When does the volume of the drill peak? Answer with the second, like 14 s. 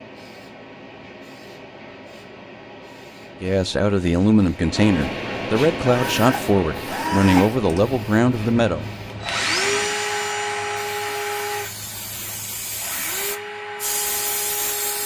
10 s.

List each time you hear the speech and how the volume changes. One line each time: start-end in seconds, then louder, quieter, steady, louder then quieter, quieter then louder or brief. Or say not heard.
3.4-8.8 steady.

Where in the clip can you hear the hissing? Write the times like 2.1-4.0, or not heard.
0.0-15.0.